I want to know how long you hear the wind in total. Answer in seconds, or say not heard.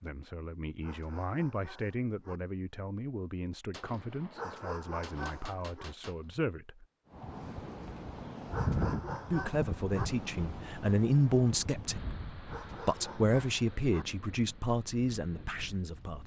9 s.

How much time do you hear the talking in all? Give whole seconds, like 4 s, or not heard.
14 s.